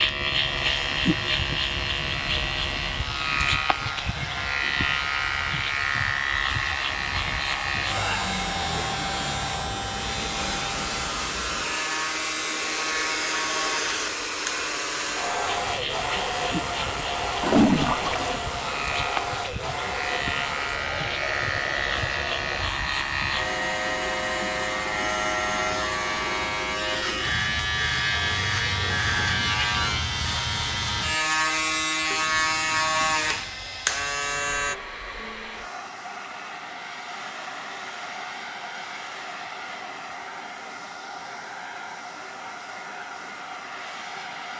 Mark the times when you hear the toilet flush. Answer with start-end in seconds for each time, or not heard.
17.4-18.4, 32.1-33.6.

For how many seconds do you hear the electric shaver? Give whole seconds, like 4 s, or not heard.
35 s.